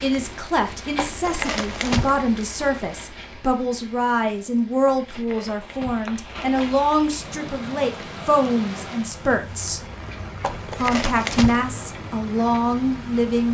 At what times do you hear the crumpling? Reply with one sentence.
The crumpling can be heard from 0.9 to 2.2 s, from 4.8 to 6.9 s and from 10.4 to 11.7 s.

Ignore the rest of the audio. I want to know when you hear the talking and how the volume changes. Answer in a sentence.
The talking can be heard from 0.0 to 9.8 s, at a steady volume; and briefly from 10.8 to 13.4 s.